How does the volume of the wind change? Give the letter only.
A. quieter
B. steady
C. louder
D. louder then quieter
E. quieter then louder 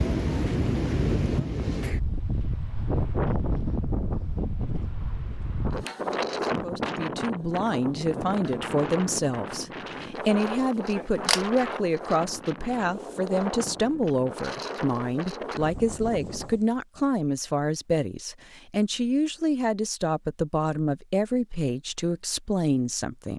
A.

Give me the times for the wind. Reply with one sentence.
The wind can be heard from 0.0 to 16.8 s.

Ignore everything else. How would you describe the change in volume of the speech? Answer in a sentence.
The volume of the speech stays about the same.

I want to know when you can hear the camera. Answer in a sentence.
You can hear the camera from 10.8 to 11.7 s.